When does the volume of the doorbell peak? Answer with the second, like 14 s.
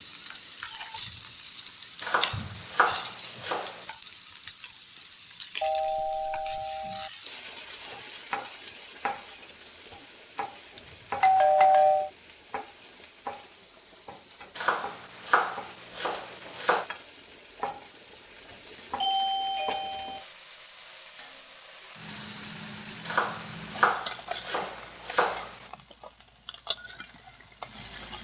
12 s.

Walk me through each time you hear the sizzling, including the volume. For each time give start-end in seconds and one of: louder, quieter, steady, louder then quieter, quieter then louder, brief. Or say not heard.
0.0-28.1 quieter then louder.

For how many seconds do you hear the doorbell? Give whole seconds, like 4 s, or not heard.
4 s.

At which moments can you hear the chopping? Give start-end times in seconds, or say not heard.
2.0-3.9, 14.6-16.9, 23.1-25.7.